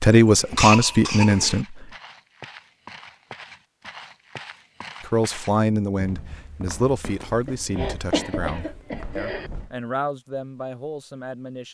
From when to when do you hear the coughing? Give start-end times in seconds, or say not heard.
0.2-1.6, 7.5-9.5.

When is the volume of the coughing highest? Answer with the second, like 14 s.
1 s.